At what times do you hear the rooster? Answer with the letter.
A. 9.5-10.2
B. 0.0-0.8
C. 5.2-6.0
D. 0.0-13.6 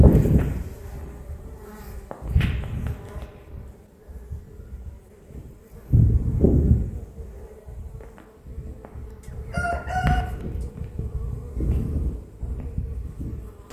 A.